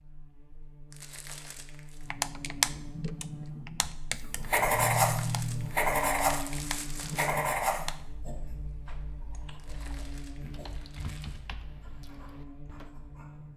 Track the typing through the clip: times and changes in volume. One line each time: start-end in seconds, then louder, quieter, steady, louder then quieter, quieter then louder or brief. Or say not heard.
2.1-12.9 quieter then louder.